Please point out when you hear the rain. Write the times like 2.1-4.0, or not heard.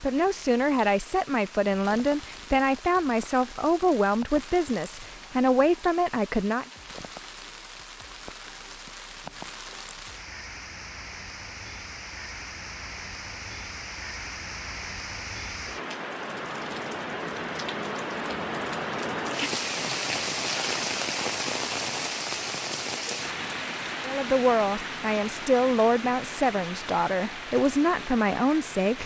0.0-29.0.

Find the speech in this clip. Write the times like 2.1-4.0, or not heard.
0.0-6.7, 24.0-29.0.